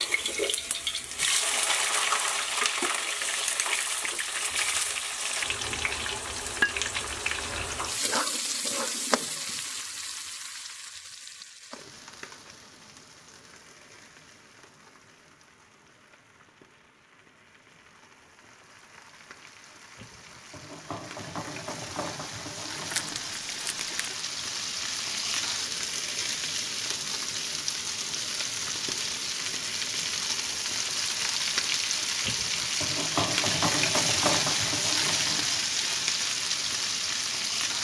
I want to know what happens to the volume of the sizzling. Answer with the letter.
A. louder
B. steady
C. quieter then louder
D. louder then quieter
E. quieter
C.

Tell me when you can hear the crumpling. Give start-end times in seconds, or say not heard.
22.9-24.1.